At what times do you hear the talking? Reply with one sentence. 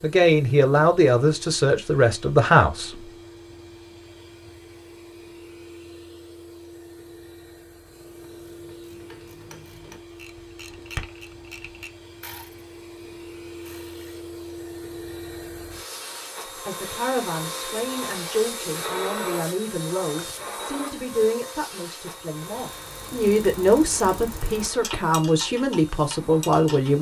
You can hear the talking from 0.0 to 3.1 s and from 16.6 to 26.9 s.